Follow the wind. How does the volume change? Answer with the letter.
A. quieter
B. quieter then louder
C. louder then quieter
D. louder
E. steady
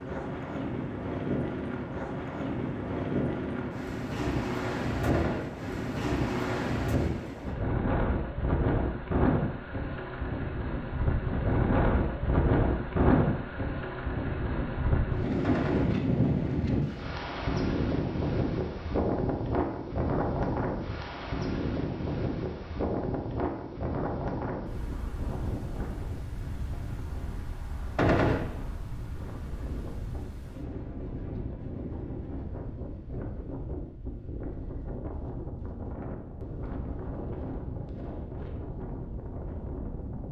A.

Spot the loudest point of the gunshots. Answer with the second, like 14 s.
28 s.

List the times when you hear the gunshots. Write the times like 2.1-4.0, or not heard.
5.0-5.5, 15.4-15.9, 27.9-28.4.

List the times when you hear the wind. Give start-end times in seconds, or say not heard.
0.0-40.2.